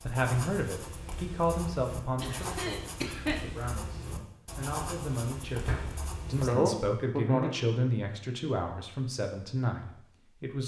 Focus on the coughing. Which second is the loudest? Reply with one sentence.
The volume of the coughing peaks at 7 seconds.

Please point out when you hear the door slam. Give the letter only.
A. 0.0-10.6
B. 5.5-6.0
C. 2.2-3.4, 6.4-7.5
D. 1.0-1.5
B.